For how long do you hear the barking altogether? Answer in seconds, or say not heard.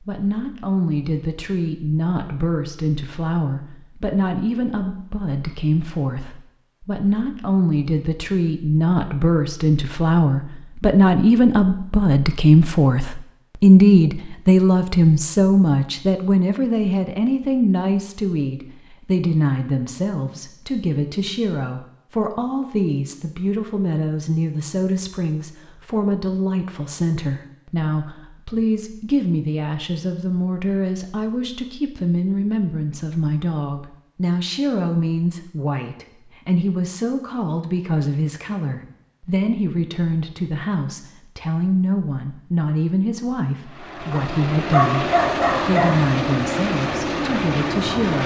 2 s.